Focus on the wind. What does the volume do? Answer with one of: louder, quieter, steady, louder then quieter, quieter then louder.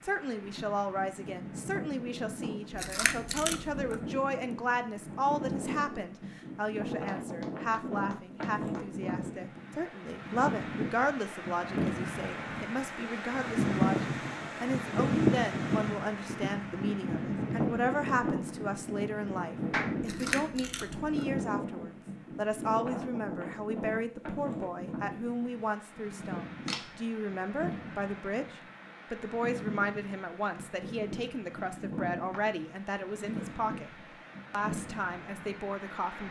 louder then quieter.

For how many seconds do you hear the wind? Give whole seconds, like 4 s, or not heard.
36 s.